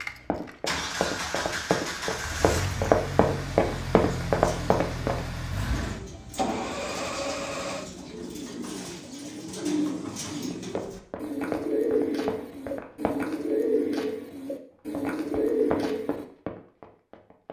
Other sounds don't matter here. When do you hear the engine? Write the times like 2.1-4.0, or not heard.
0.0-8.0.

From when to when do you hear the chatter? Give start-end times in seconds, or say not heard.
not heard.